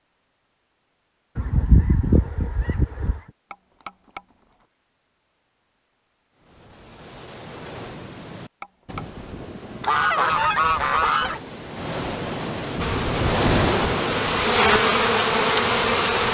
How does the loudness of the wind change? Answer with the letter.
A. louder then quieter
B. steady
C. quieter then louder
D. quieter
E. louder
A.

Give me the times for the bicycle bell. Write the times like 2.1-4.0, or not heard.
3.5-4.7, 8.6-9.2.